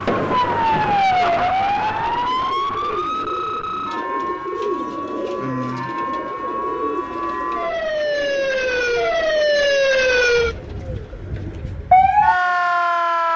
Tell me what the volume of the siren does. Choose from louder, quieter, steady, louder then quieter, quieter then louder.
quieter then louder.